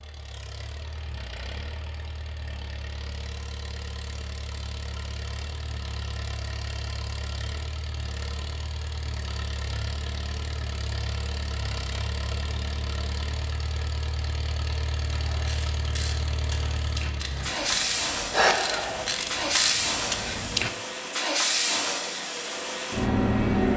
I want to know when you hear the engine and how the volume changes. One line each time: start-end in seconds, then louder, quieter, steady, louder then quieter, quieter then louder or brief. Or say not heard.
0.0-23.7 louder.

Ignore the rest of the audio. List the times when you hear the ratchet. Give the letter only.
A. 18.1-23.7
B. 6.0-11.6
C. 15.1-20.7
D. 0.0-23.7
C.